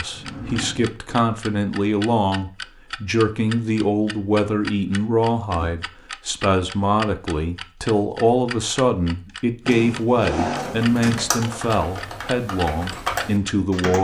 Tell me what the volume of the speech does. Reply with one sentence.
The loudness of the speech stays about the same.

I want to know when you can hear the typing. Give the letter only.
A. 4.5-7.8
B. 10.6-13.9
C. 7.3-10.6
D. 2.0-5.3
B.